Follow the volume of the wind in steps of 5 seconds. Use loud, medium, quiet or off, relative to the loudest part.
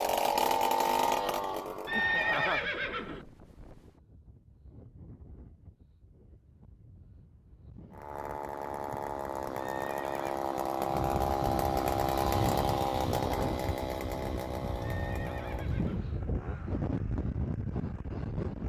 quiet, quiet, loud, loud.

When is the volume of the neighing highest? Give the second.
2 s.